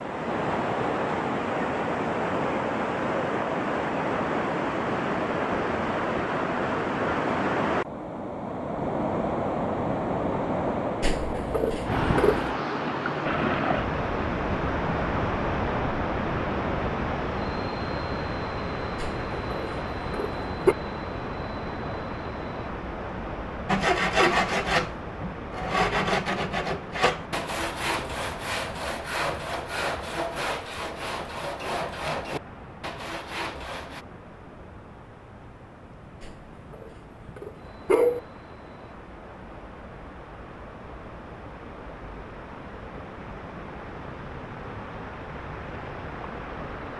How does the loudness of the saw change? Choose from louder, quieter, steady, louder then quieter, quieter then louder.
quieter.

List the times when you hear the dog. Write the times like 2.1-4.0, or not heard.
11.0-12.6, 18.9-20.8, 36.2-38.2.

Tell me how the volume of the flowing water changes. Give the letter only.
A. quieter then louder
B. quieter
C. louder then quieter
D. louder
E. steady
B.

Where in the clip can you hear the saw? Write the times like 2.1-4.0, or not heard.
23.6-34.0.